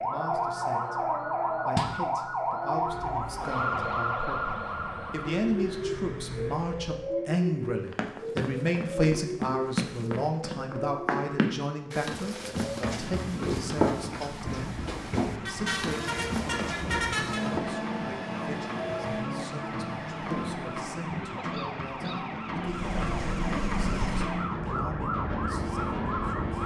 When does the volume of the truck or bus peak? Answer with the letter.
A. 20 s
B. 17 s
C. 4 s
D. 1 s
B.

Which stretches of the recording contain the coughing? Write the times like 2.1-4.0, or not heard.
21.3-22.2.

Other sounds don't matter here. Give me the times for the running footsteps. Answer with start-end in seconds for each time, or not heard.
7.6-17.6.